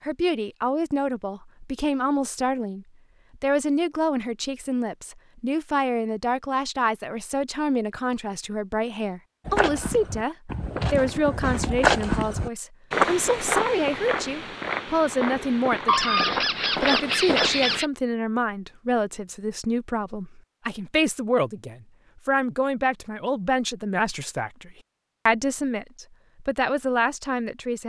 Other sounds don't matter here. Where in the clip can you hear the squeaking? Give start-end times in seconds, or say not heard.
15.8-17.9.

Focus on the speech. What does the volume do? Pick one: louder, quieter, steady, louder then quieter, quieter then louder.
steady.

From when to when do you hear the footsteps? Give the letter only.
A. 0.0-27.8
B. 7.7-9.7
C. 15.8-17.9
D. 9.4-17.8
D.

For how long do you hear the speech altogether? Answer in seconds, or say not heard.
28 s.